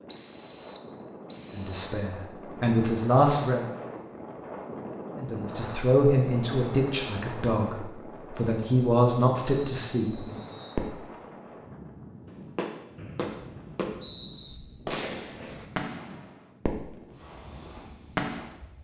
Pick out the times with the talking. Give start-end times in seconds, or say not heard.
1.6-3.6, 5.2-10.3.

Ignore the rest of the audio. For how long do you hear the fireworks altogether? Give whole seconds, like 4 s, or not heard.
6 s.